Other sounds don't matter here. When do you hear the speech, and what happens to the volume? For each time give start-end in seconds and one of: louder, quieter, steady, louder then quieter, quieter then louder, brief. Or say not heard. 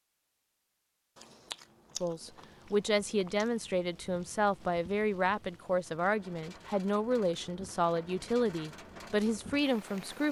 2.0-10.2 steady.